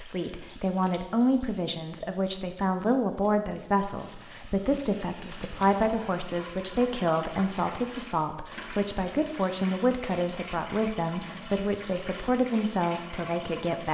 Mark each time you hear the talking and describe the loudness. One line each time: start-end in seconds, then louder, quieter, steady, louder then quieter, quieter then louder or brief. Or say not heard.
0.0-13.9 steady.